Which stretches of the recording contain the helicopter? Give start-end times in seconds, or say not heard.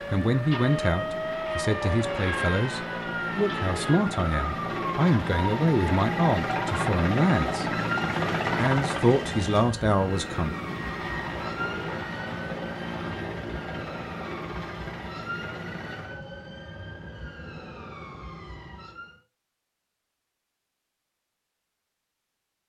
0.0-16.2.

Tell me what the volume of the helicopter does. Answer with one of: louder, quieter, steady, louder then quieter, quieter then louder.
louder then quieter.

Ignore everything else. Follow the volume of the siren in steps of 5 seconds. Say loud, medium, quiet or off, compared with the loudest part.
loud, loud, medium, medium, off.